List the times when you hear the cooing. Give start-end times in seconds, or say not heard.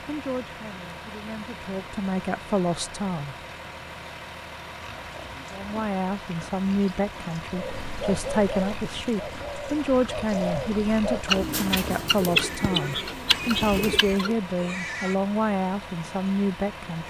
7.5-14.3.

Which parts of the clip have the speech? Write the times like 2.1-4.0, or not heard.
0.1-3.4, 5.5-17.0.